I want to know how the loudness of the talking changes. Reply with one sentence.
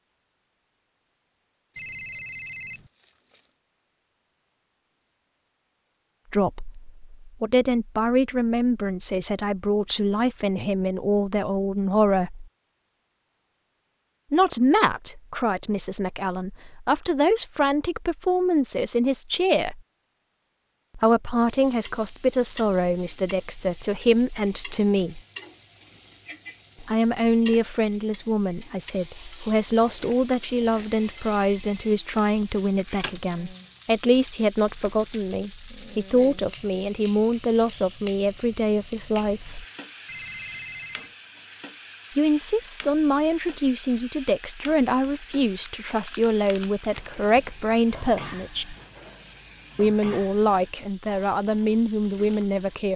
The loudness of the talking stays about the same.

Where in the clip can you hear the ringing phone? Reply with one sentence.
The ringing phone can be heard from 1.8 to 2.9 s, from 30.9 to 32.0 s and from 40.0 to 41.1 s.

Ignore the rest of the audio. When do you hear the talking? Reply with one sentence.
You can hear the talking from 6.3 to 12.4 s, from 14.3 to 19.8 s, from 20.9 to 25.2 s, from 26.8 to 39.6 s, from 42.1 to 48.8 s and from 49.8 to 52.9 s.